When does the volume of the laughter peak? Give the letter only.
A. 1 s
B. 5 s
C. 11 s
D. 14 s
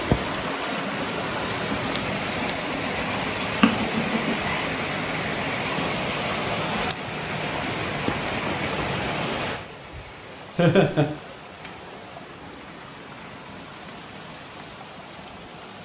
C.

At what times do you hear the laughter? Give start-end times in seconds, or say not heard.
3.6-4.6, 10.6-11.1.